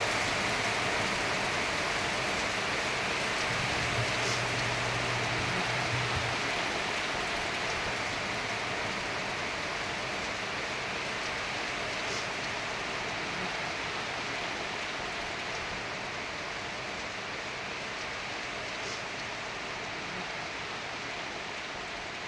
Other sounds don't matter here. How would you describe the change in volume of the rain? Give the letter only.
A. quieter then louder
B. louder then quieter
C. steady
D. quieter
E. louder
D.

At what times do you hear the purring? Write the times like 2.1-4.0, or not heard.
3.5-6.3.